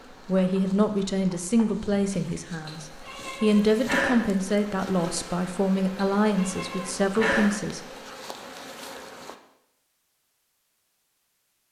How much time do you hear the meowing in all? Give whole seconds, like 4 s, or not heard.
3 s.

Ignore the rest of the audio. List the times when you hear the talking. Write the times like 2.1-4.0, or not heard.
0.2-7.8.